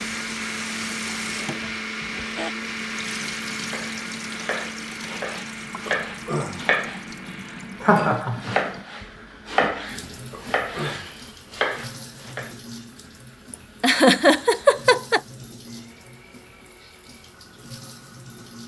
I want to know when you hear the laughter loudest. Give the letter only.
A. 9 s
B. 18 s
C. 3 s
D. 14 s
D.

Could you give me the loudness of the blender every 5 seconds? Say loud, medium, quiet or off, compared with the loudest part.
loud, medium, quiet, quiet.